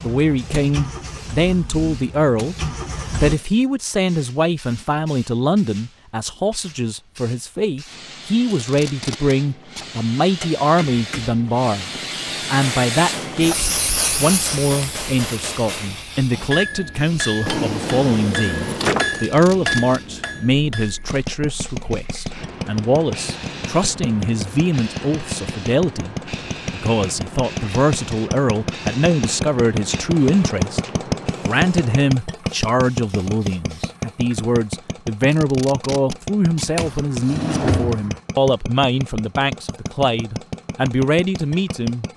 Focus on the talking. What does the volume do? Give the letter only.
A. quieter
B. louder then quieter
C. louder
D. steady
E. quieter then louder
D.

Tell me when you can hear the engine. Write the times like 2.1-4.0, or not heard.
0.0-3.4, 21.1-42.1.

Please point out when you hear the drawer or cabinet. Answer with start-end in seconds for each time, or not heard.
17.4-19.2, 36.8-38.2.